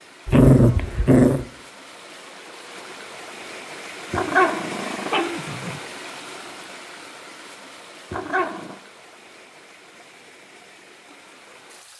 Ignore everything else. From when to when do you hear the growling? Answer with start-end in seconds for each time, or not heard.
0.2-1.4, 4.1-5.8, 8.1-8.8.